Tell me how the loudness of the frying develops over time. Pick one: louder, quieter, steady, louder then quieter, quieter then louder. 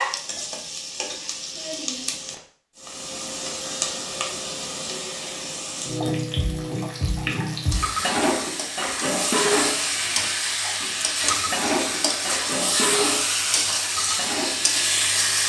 louder.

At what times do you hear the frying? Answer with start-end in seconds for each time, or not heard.
0.0-15.4.